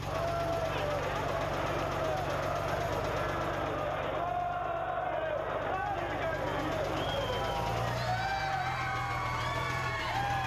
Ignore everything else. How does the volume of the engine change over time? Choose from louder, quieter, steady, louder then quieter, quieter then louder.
quieter then louder.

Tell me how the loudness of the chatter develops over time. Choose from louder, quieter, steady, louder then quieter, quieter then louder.
steady.